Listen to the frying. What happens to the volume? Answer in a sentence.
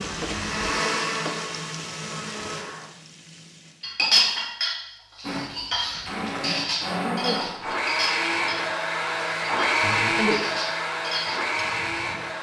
The volume of the frying goes down.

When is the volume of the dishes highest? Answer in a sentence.
The volume of the dishes peaks at 4 seconds.